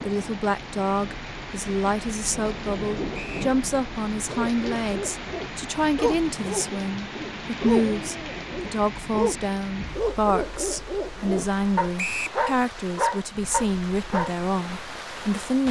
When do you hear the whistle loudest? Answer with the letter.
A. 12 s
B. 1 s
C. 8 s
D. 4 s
A.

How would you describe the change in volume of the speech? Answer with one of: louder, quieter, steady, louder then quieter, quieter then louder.
steady.